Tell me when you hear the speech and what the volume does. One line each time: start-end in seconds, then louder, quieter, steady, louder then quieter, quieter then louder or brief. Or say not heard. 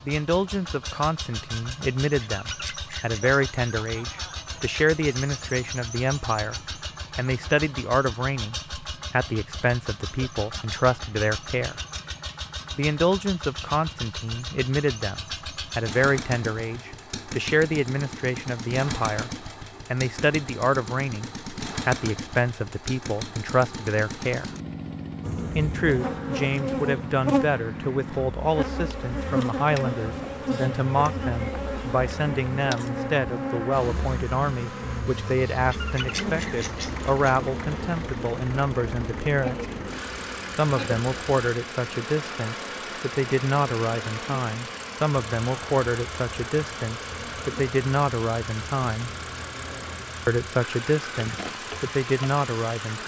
0.1-11.8 steady
12.8-24.5 steady
25.6-39.6 steady
40.5-49.1 steady
50.2-53.0 brief.